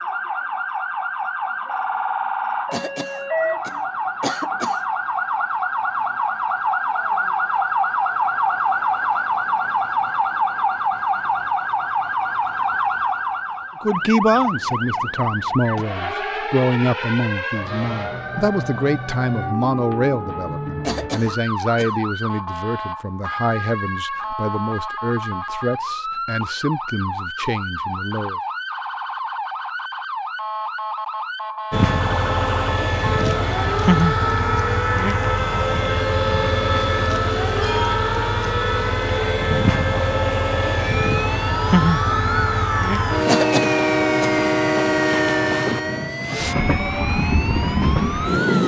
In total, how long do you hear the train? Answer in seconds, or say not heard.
17 s.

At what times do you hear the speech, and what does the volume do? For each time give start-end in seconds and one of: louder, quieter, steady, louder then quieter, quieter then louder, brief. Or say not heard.
13.8-28.4 quieter.